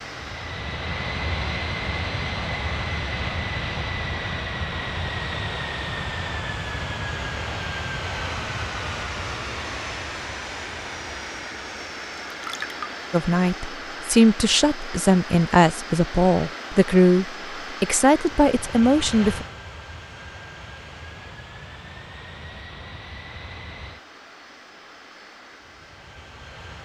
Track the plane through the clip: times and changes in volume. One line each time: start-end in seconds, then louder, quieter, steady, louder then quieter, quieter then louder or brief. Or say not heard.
0.0-26.8 quieter.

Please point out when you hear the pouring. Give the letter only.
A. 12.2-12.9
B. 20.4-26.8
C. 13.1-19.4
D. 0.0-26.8
A.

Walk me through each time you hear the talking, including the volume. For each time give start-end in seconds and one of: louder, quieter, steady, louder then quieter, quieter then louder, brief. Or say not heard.
13.1-19.4 steady.